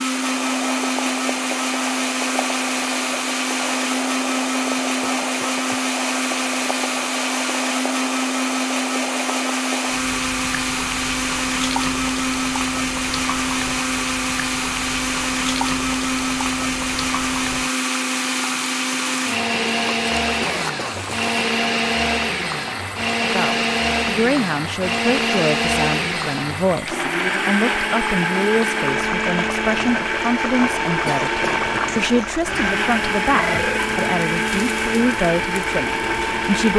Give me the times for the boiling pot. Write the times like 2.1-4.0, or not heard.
0.1-36.7.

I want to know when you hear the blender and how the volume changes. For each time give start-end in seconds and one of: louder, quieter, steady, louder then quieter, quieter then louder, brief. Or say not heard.
0.0-36.7 steady.